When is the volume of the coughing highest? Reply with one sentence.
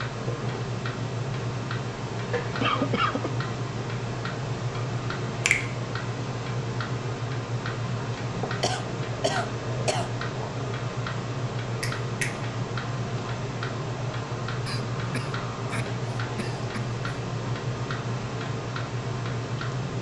The loudest moment of the coughing is at 3 seconds.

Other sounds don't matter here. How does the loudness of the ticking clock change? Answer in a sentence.
The volume of the ticking clock stays about the same.